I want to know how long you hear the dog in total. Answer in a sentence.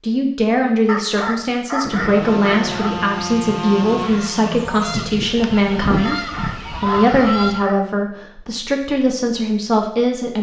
You can hear the dog for 4 seconds altogether.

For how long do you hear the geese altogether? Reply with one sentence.
The geese can be heard for 6 seconds in total.